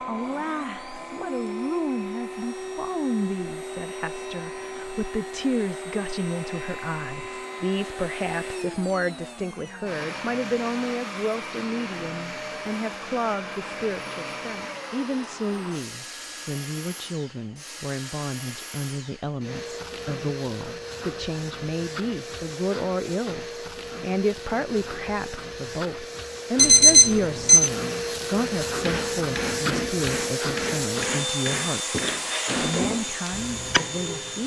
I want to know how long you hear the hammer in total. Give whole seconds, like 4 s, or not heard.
6 s.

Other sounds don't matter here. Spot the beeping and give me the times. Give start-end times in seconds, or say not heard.
26.6-27.7.